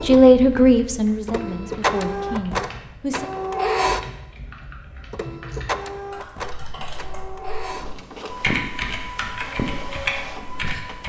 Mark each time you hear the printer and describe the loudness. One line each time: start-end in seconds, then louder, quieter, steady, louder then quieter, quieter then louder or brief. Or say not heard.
0.0-11.0 quieter.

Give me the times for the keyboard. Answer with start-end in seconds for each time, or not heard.
0.0-11.0.